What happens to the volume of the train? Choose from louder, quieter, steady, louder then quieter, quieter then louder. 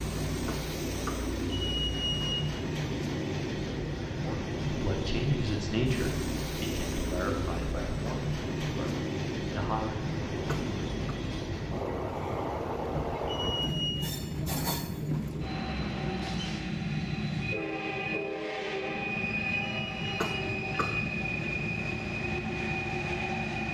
steady.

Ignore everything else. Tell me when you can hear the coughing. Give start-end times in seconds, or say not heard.
0.5-1.3, 10.4-11.2, 20.1-21.0.